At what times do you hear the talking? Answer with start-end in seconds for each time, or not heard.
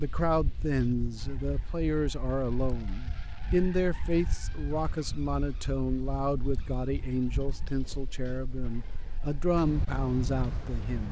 0.0-11.0.